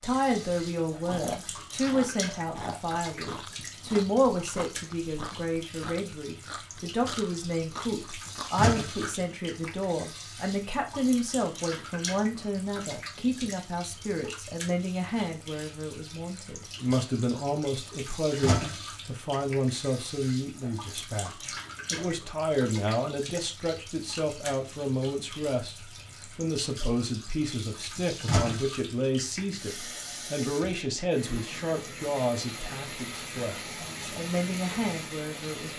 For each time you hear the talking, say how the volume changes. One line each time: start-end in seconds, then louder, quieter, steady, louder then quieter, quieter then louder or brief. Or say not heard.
0.0-35.7 steady.